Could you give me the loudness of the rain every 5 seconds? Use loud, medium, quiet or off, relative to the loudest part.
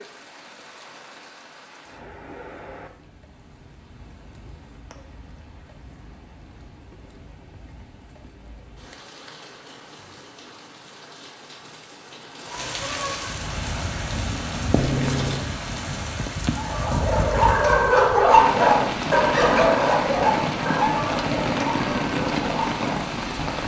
quiet, quiet, medium, loud, loud.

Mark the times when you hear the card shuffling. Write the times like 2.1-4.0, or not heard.
14.8-15.5.